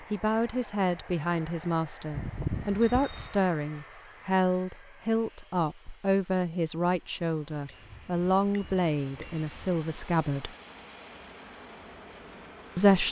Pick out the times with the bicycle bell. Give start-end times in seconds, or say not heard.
2.1-3.4, 7.7-9.7.